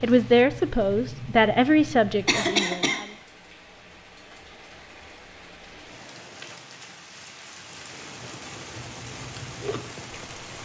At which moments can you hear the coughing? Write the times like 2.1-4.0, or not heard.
2.2-3.0.